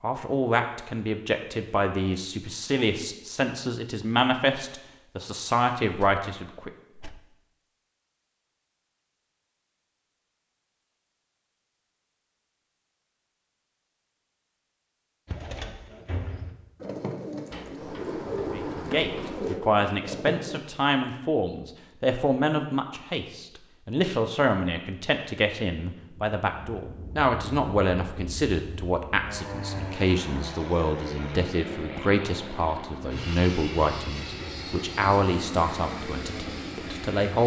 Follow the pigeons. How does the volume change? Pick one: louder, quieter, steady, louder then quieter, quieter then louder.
louder.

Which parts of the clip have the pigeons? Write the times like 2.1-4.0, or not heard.
15.2-20.6.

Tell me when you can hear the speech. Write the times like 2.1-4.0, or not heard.
0.0-6.7, 18.6-37.4.